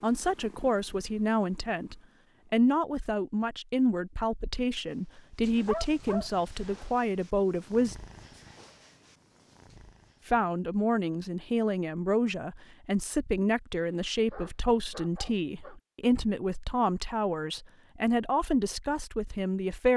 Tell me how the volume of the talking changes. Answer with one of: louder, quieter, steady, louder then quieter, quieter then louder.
steady.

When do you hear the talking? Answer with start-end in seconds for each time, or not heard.
0.0-8.0, 10.2-19.9.